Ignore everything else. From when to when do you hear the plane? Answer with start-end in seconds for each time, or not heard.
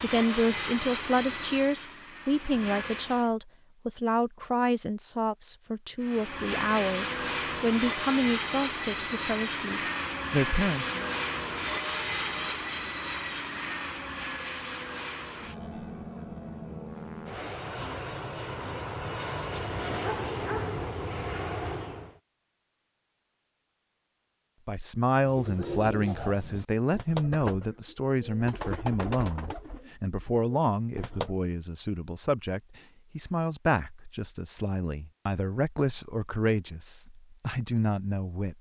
0.0-3.3, 6.0-22.2.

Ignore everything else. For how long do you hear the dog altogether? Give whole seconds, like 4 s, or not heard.
2 s.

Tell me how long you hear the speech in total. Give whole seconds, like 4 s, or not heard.
25 s.